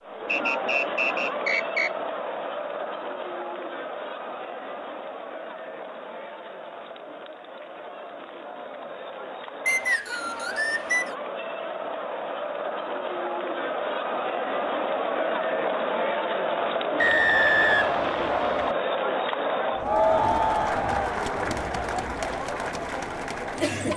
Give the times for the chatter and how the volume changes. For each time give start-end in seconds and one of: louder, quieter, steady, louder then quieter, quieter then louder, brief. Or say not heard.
0.0-23.9 quieter then louder.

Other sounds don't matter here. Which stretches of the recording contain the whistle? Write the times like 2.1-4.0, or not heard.
0.2-1.9, 9.7-11.2, 16.9-18.8.